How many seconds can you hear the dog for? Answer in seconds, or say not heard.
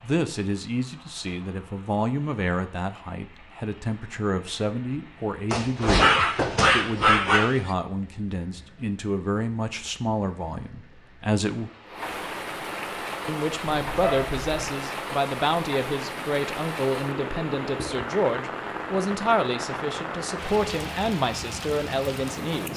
3 s.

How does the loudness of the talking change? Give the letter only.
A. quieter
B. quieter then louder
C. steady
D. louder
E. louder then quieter
C.